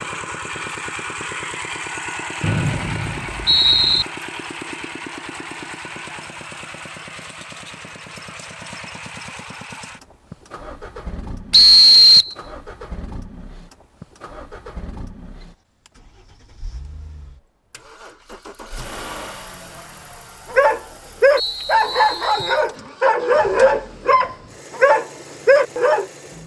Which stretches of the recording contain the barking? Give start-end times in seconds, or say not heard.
20.5-26.1.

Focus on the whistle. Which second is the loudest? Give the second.
12 s.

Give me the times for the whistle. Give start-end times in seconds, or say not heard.
2.4-4.0, 11.5-12.3, 21.4-22.6.